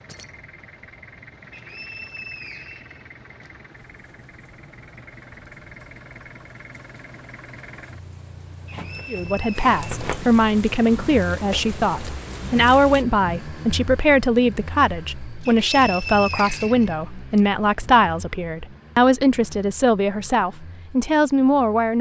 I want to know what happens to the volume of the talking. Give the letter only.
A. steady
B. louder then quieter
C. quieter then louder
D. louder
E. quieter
A.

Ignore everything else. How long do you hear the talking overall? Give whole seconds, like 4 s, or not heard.
13 s.